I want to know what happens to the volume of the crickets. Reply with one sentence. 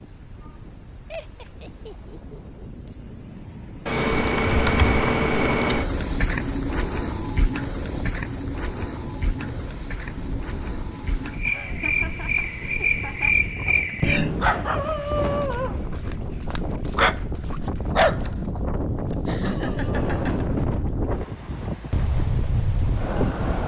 The volume of the crickets goes down, then up.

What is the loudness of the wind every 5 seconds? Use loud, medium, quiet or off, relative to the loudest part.
quiet, medium, medium, loud, loud.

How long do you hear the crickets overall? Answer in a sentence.
You can hear the crickets for 15 seconds altogether.